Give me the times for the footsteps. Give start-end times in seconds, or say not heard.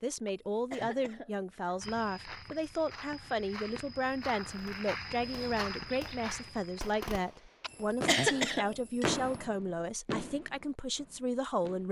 1.8-7.0.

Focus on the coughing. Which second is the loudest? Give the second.
8 s.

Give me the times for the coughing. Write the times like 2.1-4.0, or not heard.
0.2-2.0, 7.6-9.2.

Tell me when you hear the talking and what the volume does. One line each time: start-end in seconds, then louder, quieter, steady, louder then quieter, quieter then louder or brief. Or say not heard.
0.0-11.8 steady.